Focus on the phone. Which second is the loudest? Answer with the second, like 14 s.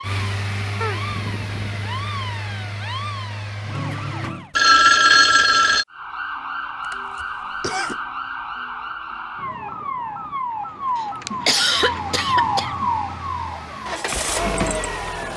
5 s.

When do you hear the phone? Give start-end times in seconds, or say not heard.
4.5-5.8, 11.2-12.2.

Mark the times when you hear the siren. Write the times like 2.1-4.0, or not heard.
0.0-4.5, 5.9-15.3.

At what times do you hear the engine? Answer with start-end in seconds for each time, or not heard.
0.0-4.3, 11.8-15.3.